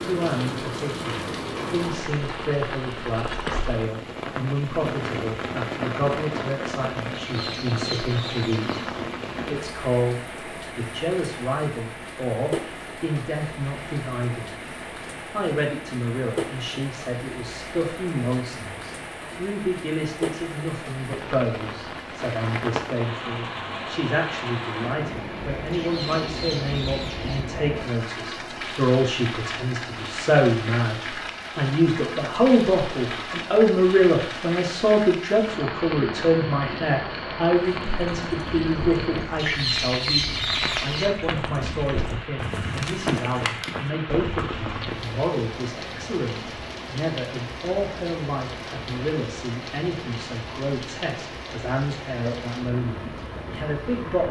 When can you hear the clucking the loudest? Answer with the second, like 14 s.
40 s.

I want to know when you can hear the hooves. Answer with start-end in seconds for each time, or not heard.
37.6-45.0.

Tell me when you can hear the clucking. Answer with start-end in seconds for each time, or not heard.
7.1-8.8, 25.7-27.4, 39.4-41.1.